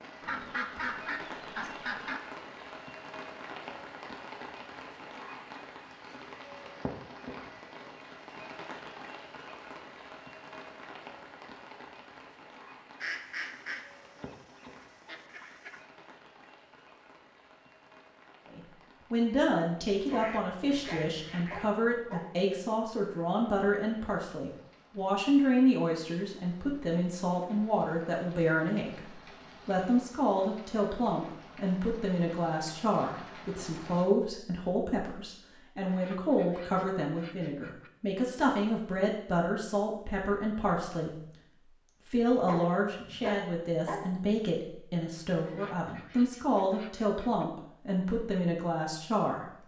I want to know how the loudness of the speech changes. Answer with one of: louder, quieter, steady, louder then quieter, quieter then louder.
steady.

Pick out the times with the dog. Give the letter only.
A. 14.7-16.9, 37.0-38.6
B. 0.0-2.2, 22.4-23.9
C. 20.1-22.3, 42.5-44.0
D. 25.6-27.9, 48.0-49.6
C.